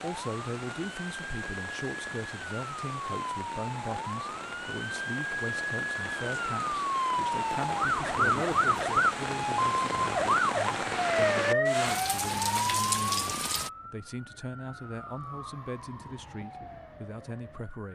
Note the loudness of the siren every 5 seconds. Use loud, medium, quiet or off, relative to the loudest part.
medium, loud, loud, quiet.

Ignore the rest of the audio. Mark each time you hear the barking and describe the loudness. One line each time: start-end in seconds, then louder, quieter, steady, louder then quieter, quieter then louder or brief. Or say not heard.
not heard.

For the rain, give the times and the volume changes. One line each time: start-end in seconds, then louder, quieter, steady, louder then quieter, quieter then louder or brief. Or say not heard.
0.0-13.7 louder.